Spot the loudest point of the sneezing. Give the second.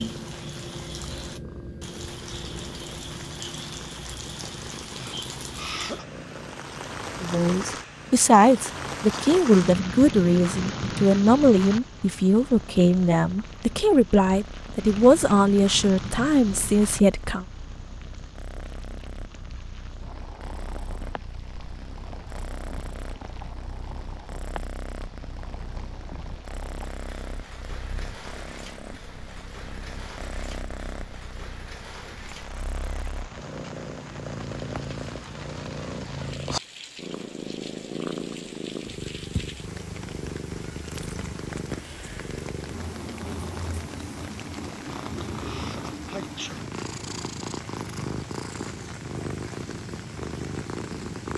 6 s.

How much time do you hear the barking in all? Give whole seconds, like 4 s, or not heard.
not heard.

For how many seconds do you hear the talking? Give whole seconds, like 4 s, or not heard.
10 s.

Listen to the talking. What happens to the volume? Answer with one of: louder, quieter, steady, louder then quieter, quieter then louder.
steady.